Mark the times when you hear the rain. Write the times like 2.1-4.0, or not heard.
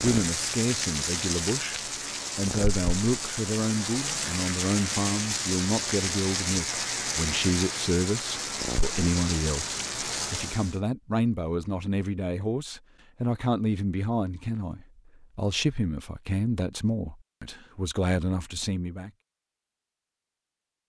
0.0-10.8.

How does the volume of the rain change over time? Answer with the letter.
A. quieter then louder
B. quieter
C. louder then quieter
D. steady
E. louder
D.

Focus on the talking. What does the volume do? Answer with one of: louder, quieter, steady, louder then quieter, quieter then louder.
steady.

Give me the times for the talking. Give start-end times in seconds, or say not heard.
0.0-19.1.